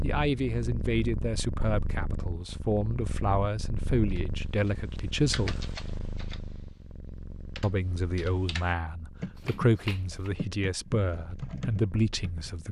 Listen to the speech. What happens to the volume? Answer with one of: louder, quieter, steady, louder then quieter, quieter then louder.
steady.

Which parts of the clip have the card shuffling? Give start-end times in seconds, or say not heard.
9.3-10.3.